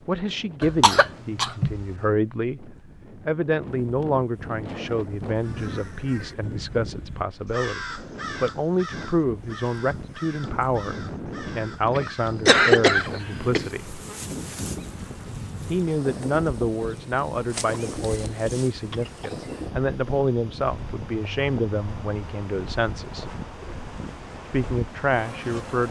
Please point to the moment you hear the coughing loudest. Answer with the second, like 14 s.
13 s.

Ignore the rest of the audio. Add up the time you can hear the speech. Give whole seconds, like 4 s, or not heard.
23 s.